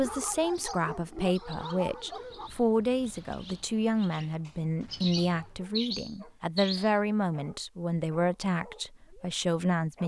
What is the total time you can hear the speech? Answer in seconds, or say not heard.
10 s.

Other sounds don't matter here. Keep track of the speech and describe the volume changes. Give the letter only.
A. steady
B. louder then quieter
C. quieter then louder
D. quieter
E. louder
A.